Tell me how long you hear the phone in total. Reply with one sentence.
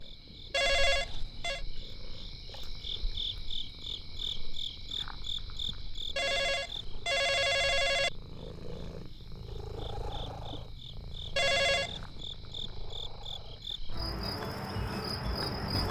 The phone can be heard for 4 seconds in total.